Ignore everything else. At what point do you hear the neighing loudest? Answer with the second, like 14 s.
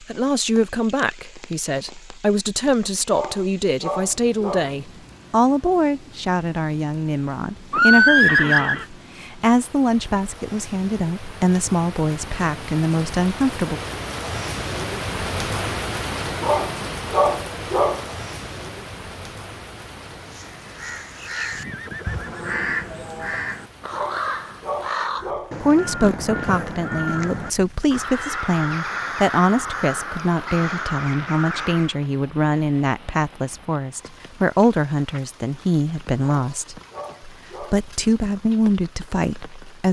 8 s.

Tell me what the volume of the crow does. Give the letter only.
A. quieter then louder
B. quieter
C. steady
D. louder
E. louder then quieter
C.